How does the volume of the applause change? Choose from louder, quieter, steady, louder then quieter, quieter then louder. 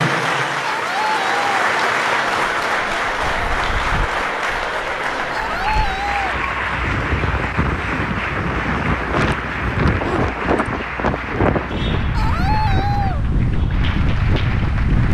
quieter.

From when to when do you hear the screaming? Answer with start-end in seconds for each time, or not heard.
0.6-1.4, 5.3-6.3, 12.1-13.2.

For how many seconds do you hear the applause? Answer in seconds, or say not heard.
15 s.